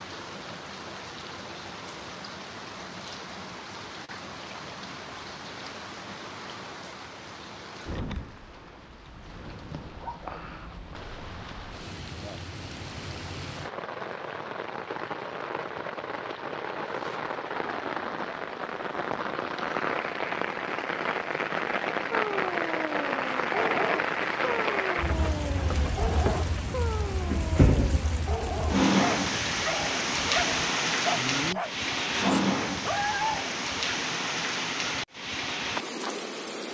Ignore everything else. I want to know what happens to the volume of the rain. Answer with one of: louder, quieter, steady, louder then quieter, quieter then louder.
louder.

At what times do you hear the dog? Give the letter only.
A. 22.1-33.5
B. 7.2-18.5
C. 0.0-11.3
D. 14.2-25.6
A.